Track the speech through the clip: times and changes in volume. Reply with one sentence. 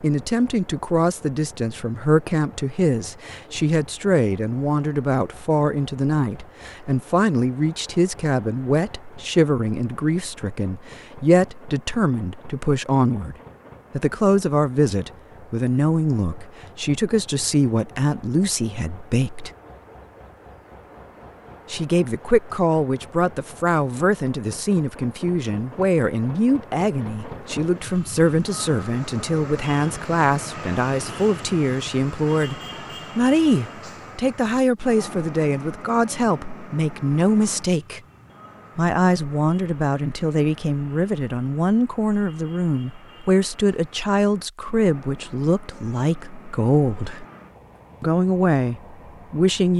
You can hear the speech from 0.0 to 19.5 s, at a steady volume; from 21.7 to 38.0 s, at a steady volume; from 38.8 to 47.2 s, at a steady volume; and briefly from 48.0 to 49.7 s.